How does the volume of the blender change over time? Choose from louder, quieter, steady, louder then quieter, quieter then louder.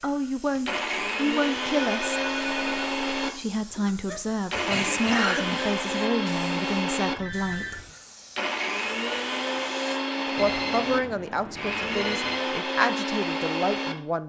steady.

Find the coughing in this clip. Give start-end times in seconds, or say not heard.
4.0-6.0.